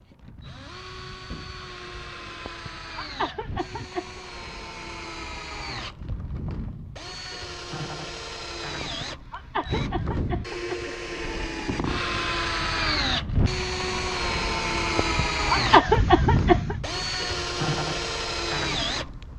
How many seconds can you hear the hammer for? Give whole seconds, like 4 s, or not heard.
not heard.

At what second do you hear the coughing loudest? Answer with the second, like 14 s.
16 s.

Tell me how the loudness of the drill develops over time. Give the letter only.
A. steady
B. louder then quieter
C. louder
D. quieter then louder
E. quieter
C.